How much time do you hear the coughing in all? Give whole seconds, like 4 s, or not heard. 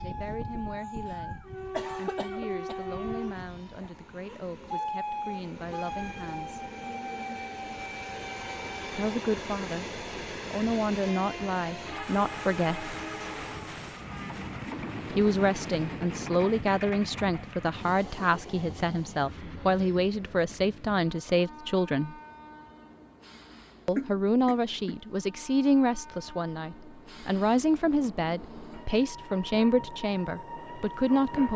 3 s.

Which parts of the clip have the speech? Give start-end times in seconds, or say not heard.
0.0-1.4, 1.9-6.7, 8.9-9.9, 10.5-12.9, 15.1-22.1, 23.9-31.5.